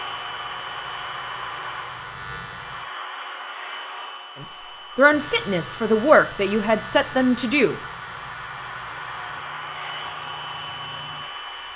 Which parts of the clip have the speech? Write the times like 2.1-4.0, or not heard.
4.4-7.8.